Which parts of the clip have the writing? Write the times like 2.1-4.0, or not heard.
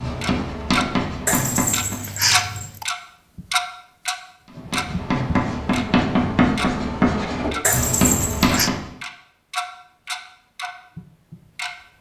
0.0-2.0, 4.5-8.9.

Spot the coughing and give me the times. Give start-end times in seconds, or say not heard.
1.2-2.9, 7.6-8.7.